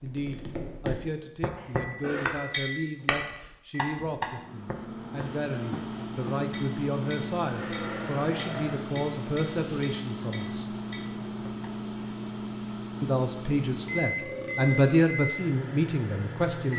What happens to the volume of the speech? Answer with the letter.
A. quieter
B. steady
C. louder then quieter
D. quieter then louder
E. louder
E.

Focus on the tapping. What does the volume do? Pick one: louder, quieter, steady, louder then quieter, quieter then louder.
quieter.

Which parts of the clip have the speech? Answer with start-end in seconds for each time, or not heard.
0.0-10.7, 13.0-16.7.